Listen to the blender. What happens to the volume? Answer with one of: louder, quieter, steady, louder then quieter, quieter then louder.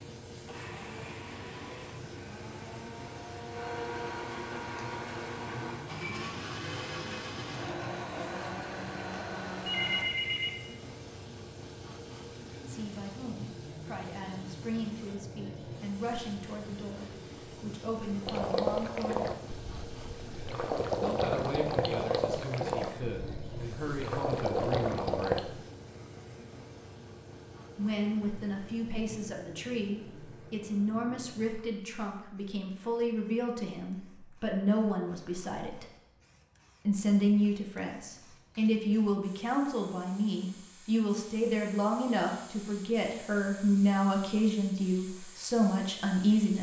louder.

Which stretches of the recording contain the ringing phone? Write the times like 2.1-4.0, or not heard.
9.6-10.6.